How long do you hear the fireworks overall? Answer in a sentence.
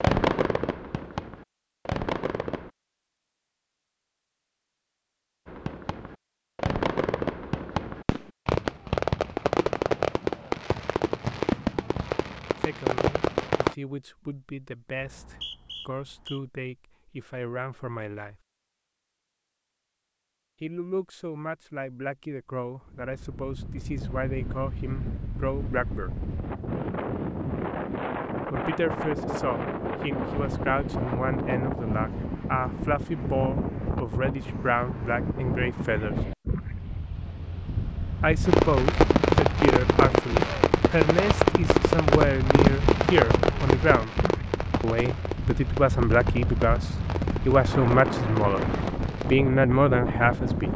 You can hear the fireworks for 22 seconds altogether.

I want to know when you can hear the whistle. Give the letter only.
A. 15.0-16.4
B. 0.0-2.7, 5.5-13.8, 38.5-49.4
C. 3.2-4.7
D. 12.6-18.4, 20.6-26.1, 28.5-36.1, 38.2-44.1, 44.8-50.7
A.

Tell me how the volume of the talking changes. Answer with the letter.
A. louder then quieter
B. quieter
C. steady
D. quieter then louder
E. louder
E.